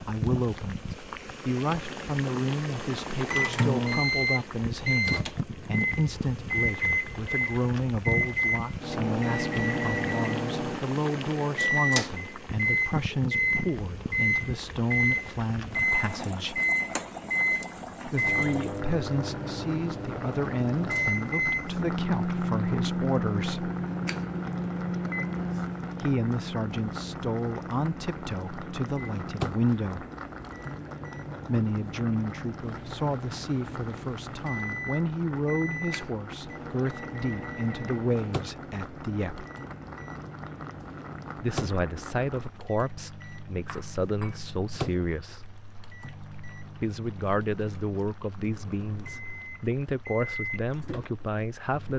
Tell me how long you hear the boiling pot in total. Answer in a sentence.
You can hear the boiling pot for 52 seconds altogether.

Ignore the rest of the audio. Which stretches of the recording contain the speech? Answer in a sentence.
The speech can be heard from 0.0 to 16.6 s, from 18.1 to 23.7 s, from 26.0 to 30.1 s, from 31.4 to 39.5 s, from 41.4 to 45.5 s and from 46.8 to 51.9 s.